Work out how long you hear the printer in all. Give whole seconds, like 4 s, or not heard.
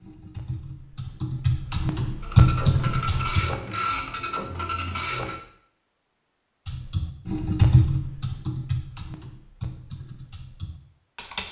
3 s.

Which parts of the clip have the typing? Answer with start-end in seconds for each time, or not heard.
0.0-3.4, 6.7-11.4.